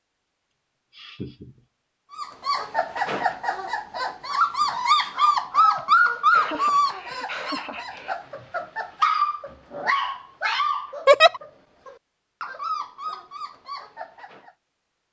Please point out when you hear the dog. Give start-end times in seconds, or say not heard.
2.1-14.5.